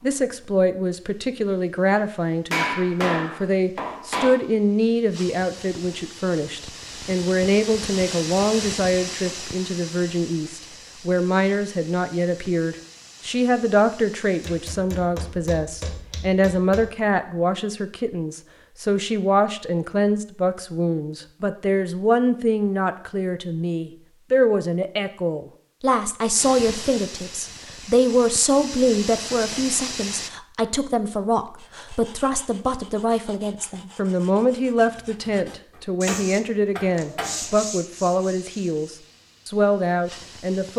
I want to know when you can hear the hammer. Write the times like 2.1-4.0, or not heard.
2.5-4.3, 14.4-16.9, 36.0-37.4.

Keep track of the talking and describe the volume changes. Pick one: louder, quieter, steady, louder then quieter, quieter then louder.
steady.